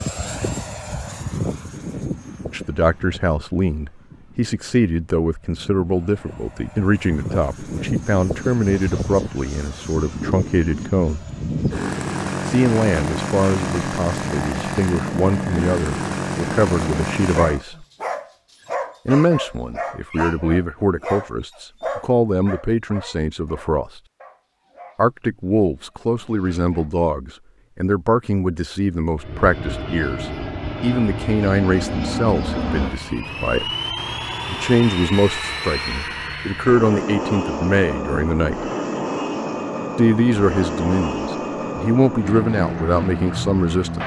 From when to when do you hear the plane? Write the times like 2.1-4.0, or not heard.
0.0-17.6, 29.1-44.0.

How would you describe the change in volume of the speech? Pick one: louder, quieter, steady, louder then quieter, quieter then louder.
steady.